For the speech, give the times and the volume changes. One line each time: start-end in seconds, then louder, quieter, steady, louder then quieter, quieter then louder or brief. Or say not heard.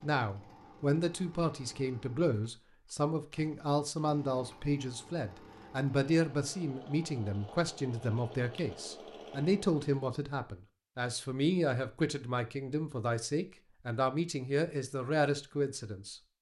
0.0-16.2 steady.